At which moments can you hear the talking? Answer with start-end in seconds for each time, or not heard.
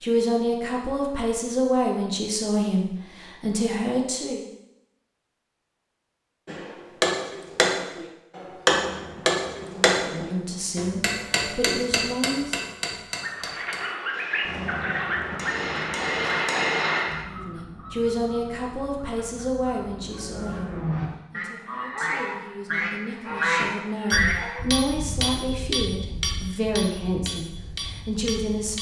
0.0-4.5, 9.6-12.7, 17.2-28.7.